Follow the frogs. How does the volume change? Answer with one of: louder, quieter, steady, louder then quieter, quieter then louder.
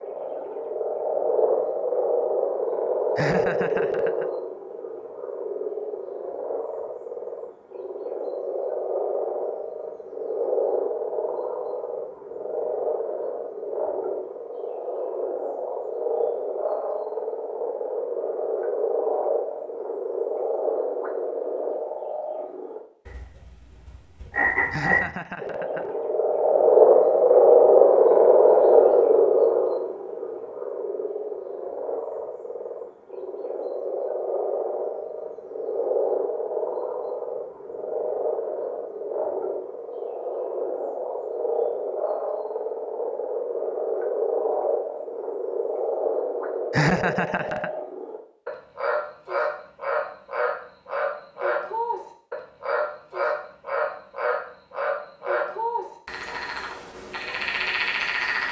louder then quieter.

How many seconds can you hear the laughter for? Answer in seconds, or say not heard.
3 s.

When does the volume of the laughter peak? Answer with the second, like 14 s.
47 s.